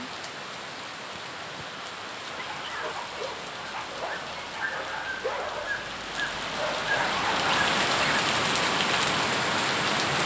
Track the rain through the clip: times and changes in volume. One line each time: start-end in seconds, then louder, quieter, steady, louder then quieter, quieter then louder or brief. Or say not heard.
0.0-10.2 louder.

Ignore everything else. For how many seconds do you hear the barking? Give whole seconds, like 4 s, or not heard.
6 s.